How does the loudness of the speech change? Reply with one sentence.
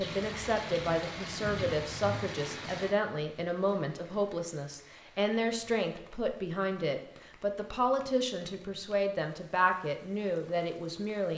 The volume of the speech stays about the same.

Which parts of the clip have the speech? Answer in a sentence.
The speech can be heard from 0.0 to 11.3 s.